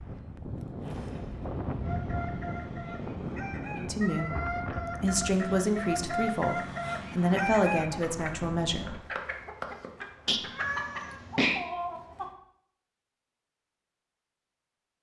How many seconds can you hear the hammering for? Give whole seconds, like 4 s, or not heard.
not heard.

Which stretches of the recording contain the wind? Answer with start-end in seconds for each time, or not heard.
0.0-9.1.